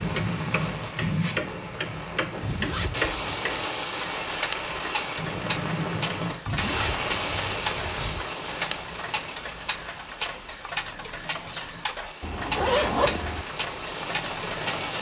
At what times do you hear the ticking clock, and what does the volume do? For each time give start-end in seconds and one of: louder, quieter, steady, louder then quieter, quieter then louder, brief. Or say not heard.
0.0-14.9 steady.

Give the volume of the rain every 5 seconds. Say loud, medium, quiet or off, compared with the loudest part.
loud, loud, medium.